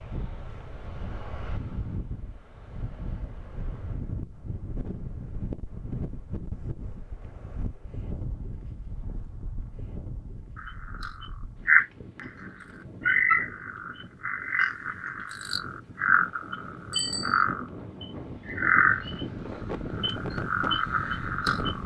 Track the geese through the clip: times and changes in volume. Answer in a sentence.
The geese can't be heard in this clip.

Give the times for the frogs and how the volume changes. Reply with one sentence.
You can hear the frogs from 10.6 to 19.2 s, getting quieter then louder; and briefly from 19.9 to 21.8 s.